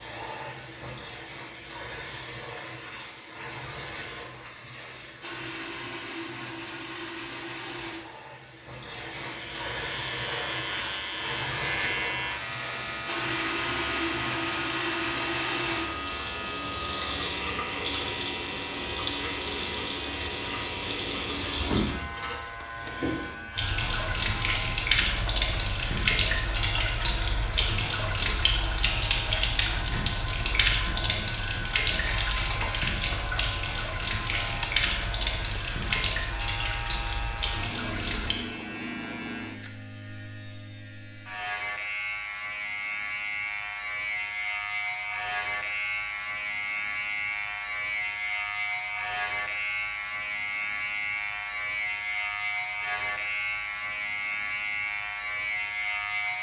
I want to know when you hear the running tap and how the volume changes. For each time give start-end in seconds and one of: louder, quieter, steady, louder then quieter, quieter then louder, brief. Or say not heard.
0.0-38.4 louder.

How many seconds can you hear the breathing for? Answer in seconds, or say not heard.
not heard.